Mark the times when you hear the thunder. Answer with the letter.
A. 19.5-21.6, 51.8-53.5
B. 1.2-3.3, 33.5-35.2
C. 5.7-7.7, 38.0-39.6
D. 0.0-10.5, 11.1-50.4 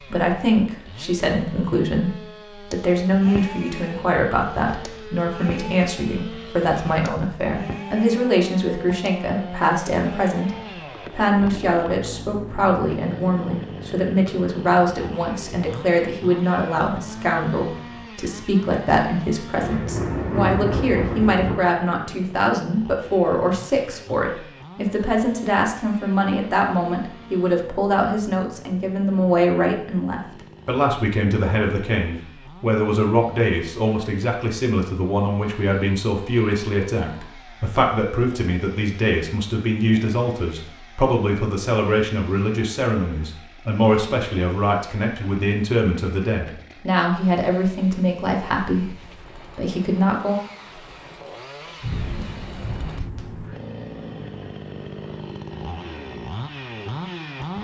A.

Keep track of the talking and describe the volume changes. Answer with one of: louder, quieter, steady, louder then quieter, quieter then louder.
steady.